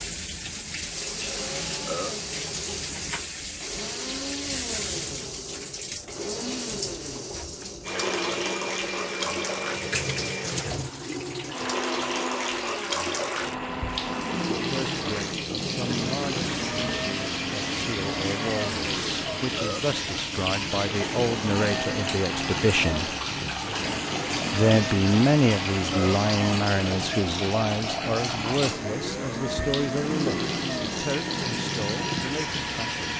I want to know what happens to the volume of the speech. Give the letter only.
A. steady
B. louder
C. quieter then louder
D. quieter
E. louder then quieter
E.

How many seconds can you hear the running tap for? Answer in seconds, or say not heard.
33 s.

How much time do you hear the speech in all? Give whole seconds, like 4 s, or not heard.
17 s.